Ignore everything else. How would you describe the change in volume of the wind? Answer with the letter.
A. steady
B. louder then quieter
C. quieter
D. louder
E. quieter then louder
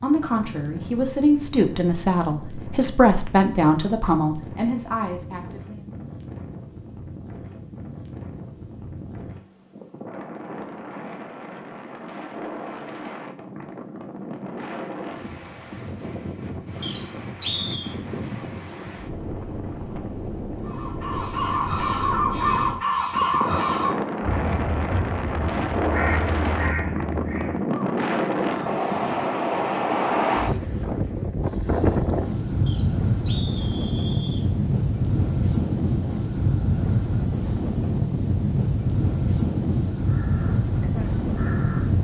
D.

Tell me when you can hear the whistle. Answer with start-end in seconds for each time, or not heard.
16.8-17.9, 32.6-34.5.